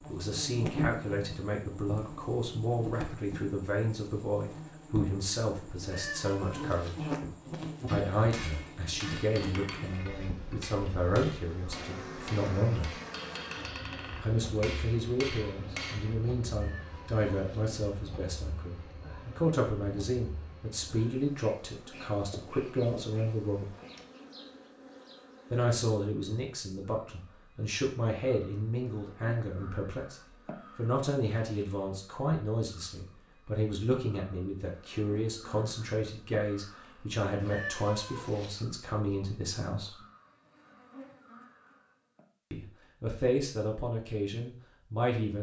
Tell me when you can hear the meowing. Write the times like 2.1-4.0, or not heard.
5.8-7.1, 16.6-17.8, 37.4-38.6.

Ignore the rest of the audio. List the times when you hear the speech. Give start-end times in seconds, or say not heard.
0.1-7.1, 7.8-13.0, 14.2-23.8, 25.5-30.1, 30.8-40.0, 42.5-45.3.